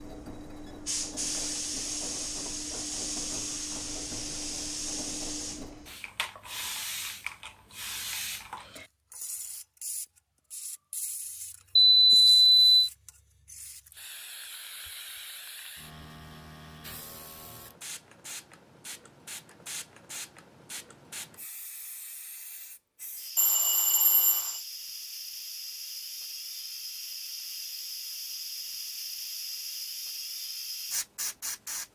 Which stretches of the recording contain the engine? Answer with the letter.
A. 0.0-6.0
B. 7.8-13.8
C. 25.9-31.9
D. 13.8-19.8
A.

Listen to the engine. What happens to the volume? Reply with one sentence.
The volume of the engine stays about the same.